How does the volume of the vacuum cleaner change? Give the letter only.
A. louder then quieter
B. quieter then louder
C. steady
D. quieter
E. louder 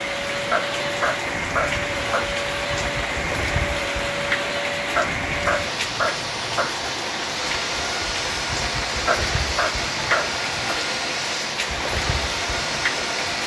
C.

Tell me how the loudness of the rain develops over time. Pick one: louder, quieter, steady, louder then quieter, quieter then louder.
steady.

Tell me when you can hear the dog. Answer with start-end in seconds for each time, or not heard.
0.5-2.2, 5.0-6.7, 9.1-10.8.